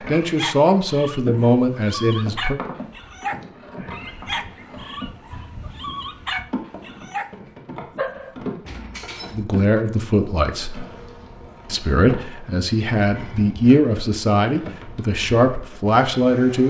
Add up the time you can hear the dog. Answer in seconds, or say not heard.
9 s.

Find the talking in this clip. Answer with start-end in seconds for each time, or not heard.
0.1-2.6, 9.3-10.8, 11.7-16.6.